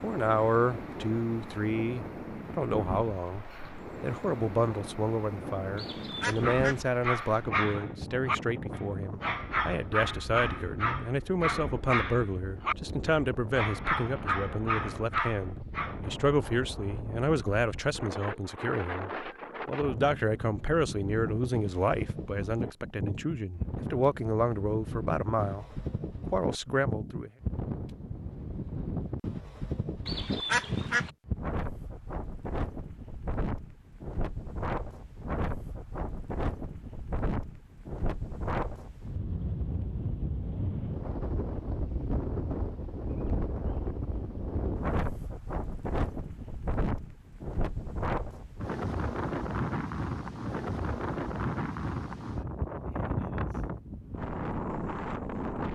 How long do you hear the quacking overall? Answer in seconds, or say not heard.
2 s.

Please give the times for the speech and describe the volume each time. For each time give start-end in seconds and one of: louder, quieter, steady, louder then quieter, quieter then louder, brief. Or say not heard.
0.0-27.3 steady.